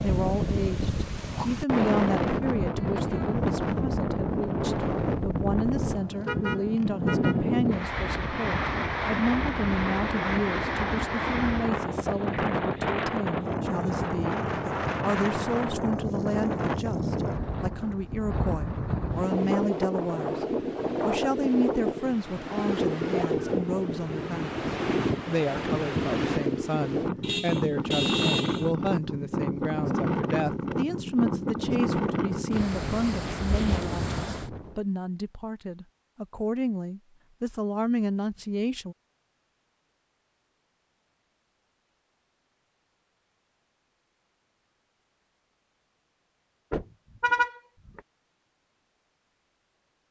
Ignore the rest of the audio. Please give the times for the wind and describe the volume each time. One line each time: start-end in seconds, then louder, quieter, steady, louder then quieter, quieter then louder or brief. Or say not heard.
0.0-34.8 steady.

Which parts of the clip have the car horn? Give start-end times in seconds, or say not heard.
6.2-7.5, 27.2-28.8, 46.7-48.0.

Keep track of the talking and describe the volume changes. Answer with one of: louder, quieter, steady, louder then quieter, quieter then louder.
steady.